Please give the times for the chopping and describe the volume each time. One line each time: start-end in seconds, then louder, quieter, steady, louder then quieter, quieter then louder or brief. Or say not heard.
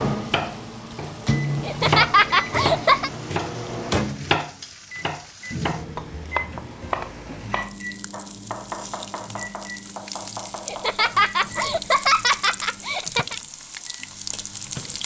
0.3-12.1 quieter.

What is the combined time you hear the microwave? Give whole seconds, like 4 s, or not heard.
15 s.